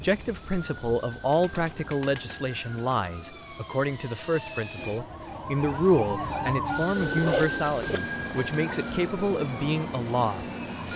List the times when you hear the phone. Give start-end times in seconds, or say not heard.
not heard.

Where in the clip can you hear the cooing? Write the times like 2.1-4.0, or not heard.
1.3-3.1, 7.0-9.1.